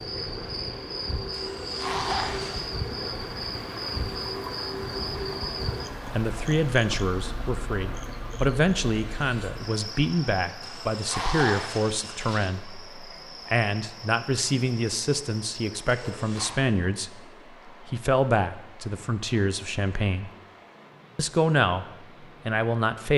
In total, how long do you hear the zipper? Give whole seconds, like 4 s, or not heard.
4 s.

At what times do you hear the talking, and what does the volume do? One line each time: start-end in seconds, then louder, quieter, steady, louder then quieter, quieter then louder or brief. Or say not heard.
6.2-20.3 steady
21.1-21.9 brief
22.4-23.1 brief.